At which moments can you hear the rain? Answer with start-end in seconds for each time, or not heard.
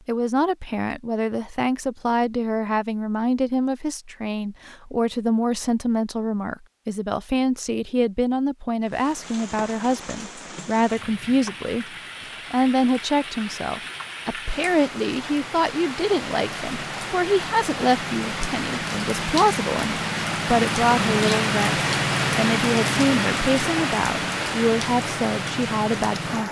8.8-26.4.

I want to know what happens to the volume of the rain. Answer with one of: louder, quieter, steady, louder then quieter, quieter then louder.
louder.